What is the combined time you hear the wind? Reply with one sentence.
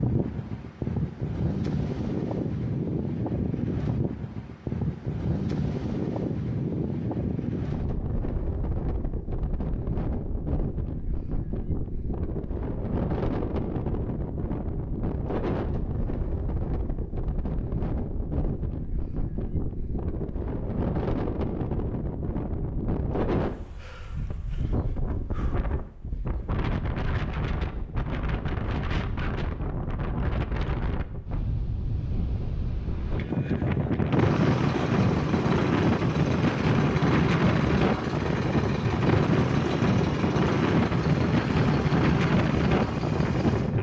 The wind can be heard for 44 seconds in total.